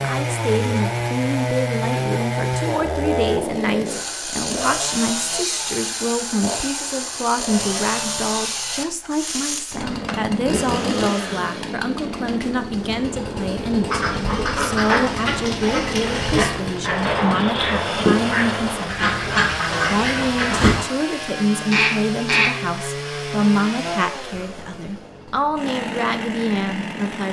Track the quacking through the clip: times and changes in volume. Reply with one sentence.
You can hear the quacking from 13.8 to 20.9 s, at a steady volume; and briefly from 21.7 to 22.5 s.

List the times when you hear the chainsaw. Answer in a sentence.
You can hear the chainsaw from 0.0 to 27.2 s.